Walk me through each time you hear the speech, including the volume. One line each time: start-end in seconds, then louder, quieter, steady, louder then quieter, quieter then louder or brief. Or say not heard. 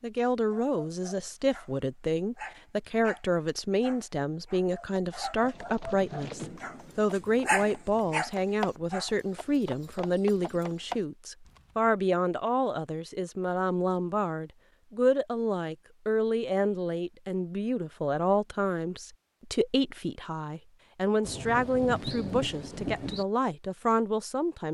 0.0-24.7 steady.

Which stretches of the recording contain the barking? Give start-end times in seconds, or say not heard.
0.5-9.2.